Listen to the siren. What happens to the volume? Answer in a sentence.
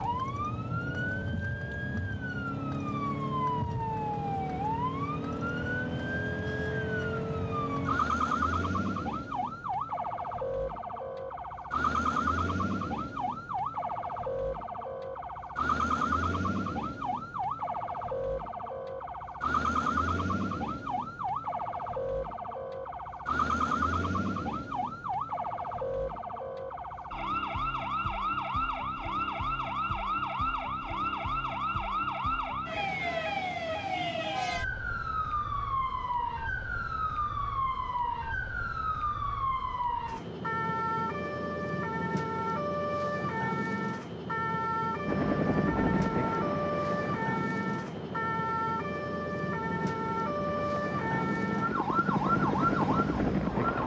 The loudness of the siren stays about the same.